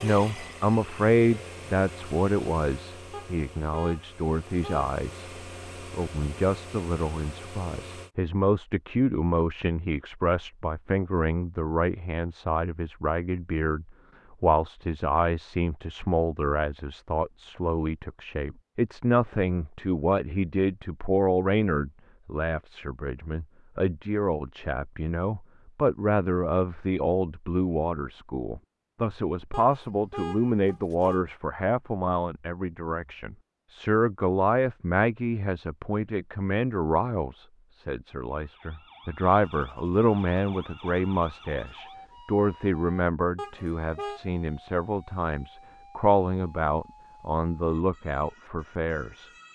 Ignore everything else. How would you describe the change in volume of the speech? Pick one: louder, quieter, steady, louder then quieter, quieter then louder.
steady.